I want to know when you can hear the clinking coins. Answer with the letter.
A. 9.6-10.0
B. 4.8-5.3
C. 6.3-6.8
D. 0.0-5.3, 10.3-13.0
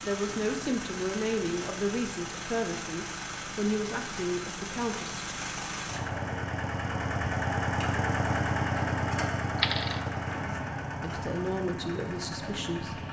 A.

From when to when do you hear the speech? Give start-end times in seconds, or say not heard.
0.0-5.3, 10.3-13.0.